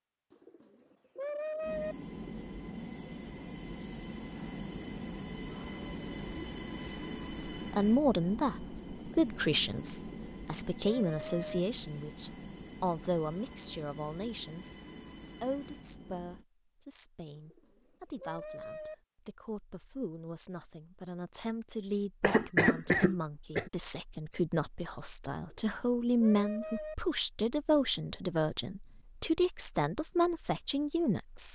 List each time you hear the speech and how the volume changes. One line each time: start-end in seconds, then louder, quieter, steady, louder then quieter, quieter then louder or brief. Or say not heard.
6.8-14.8 quieter
15.4-31.5 louder.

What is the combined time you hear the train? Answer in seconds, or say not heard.
15 s.